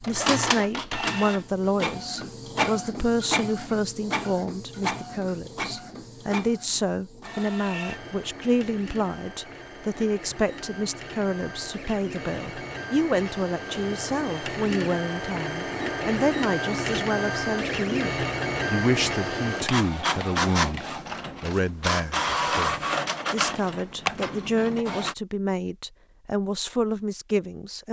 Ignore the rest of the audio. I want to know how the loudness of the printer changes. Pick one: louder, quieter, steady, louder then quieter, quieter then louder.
quieter then louder.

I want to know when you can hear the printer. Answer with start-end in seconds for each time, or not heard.
0.0-25.1.